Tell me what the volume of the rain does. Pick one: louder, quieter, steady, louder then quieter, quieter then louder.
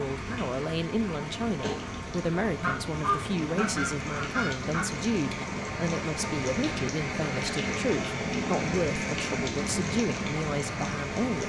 louder.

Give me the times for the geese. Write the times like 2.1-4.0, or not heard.
2.6-4.8.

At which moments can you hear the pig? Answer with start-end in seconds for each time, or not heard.
not heard.